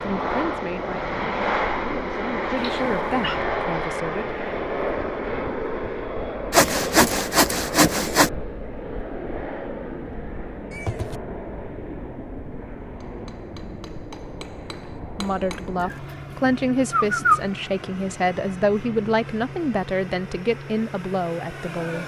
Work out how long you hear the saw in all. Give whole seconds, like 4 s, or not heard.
2 s.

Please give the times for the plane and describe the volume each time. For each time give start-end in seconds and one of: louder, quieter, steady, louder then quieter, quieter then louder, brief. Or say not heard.
0.0-22.0 quieter.